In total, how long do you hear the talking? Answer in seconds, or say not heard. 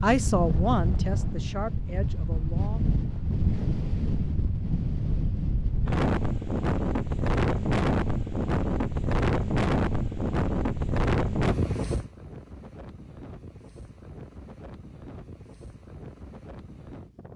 3 s.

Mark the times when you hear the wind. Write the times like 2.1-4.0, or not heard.
0.0-17.3.